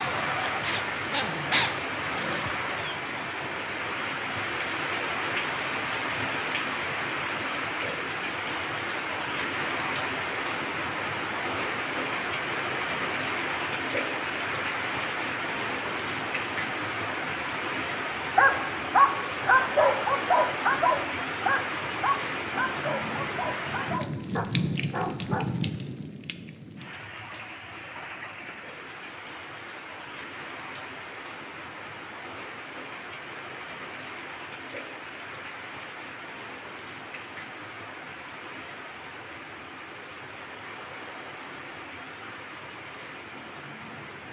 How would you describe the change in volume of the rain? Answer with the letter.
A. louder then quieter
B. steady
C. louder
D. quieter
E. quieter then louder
D.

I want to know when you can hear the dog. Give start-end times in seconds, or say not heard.
0.0-3.0, 18.4-25.4.